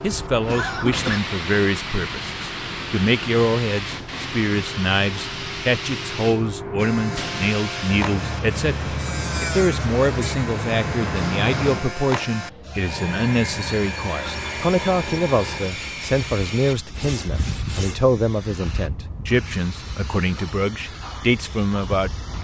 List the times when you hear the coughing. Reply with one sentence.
The coughing can be heard from 0.1 to 1.2 s.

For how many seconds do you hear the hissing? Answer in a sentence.
You can hear the hissing for 22 seconds altogether.